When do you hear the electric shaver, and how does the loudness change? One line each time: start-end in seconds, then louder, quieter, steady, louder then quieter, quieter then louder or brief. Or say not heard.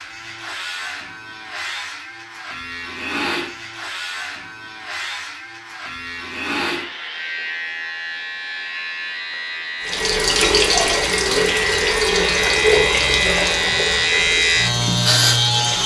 0.0-15.8 louder.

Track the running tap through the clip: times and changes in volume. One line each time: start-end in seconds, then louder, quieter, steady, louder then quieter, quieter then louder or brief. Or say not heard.
9.8-15.8 quieter.